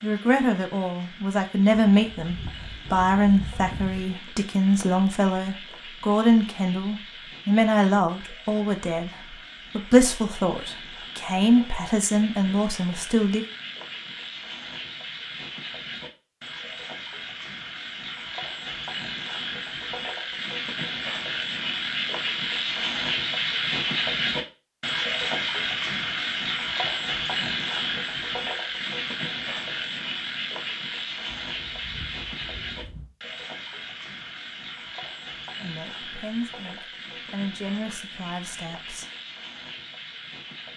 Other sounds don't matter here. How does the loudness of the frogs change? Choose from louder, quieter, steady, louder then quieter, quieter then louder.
louder then quieter.